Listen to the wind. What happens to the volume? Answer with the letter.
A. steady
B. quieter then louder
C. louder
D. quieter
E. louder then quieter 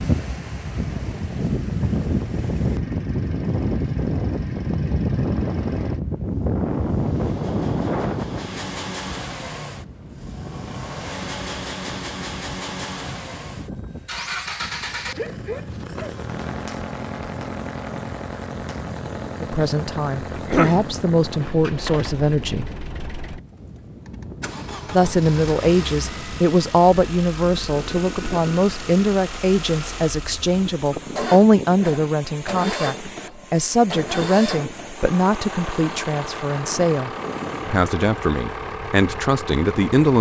D.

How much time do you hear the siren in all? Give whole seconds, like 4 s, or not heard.
not heard.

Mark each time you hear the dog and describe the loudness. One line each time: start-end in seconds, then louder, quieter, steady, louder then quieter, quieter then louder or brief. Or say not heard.
not heard.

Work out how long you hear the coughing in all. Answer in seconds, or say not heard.
2 s.